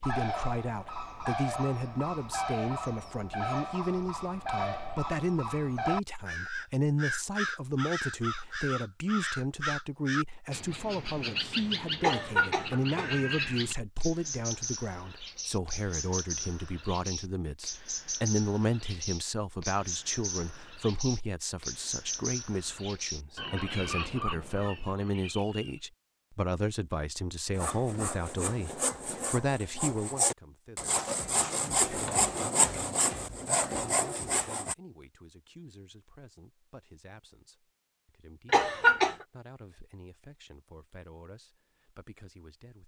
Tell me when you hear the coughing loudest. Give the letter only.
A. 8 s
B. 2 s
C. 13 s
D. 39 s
D.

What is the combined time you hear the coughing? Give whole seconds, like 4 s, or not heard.
2 s.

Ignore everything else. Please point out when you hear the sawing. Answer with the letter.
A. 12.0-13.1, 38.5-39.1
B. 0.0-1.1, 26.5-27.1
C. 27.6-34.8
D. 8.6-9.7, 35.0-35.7
C.